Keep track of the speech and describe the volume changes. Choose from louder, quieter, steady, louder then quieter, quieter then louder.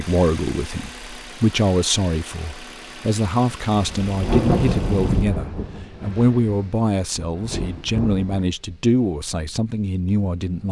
steady.